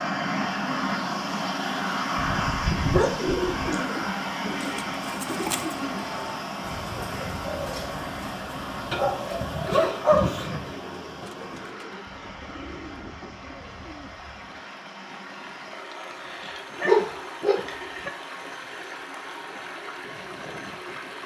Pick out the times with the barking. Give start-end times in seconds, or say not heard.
2.1-3.8, 8.9-10.7, 16.1-18.1.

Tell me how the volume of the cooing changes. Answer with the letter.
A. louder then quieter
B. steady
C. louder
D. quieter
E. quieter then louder
D.